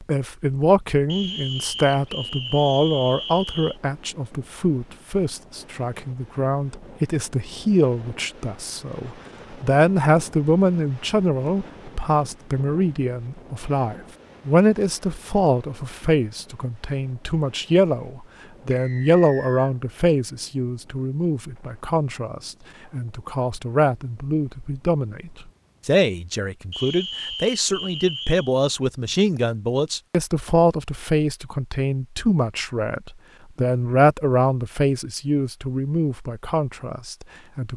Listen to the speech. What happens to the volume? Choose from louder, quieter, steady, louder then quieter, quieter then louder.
steady.